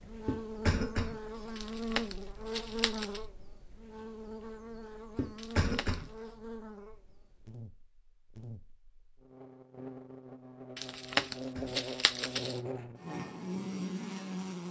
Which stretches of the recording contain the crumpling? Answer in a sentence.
You can hear the crumpling from 1.6 to 3.2 s, from 5.3 to 6.1 s and from 10.8 to 12.6 s.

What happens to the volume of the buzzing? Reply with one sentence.
The volume of the buzzing goes down, then up.